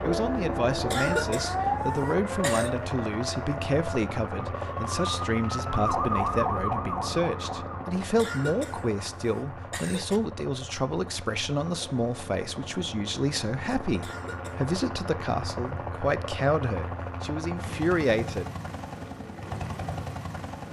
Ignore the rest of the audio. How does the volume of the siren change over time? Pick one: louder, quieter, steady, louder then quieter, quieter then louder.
quieter then louder.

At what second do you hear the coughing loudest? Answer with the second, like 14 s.
1 s.